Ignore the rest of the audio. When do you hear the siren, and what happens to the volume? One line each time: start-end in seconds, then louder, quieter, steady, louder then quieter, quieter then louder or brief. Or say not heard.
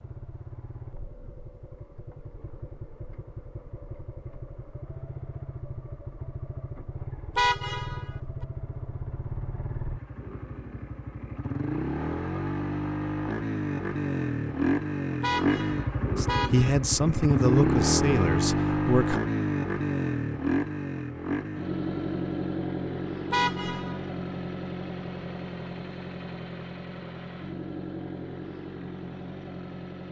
not heard.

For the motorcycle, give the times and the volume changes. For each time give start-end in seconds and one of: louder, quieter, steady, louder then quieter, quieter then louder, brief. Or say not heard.
0.0-30.0 louder then quieter.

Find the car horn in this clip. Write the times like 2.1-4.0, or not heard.
7.3-8.1, 15.2-16.8, 23.3-24.1.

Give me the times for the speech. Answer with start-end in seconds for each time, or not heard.
16.1-19.2.